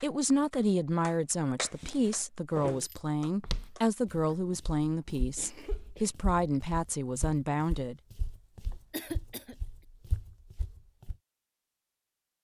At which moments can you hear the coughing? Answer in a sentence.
The coughing can be heard from 1.6 to 2.2 s, from 5.3 to 6.1 s and from 8.9 to 9.6 s.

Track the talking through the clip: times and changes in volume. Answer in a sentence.
You can hear the talking from 0.0 to 8.0 s, at a steady volume.